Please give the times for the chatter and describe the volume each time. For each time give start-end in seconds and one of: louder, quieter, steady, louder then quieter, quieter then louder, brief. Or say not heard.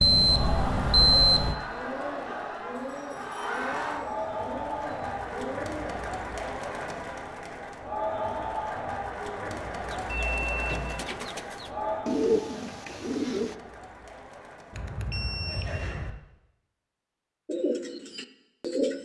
0.0-16.1 quieter.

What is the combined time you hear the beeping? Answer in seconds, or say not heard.
4 s.